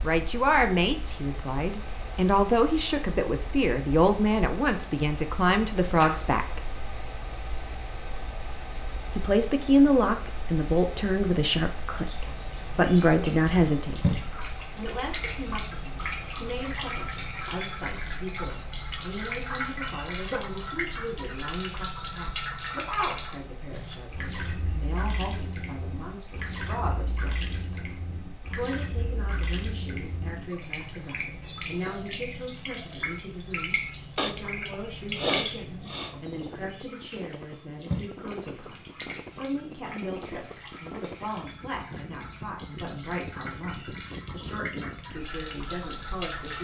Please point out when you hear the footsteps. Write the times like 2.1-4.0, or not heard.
not heard.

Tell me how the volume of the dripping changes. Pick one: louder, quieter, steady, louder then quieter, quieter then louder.
quieter.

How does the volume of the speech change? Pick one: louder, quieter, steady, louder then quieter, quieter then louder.
quieter.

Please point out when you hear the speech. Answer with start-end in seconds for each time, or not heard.
0.0-6.7, 9.1-46.5.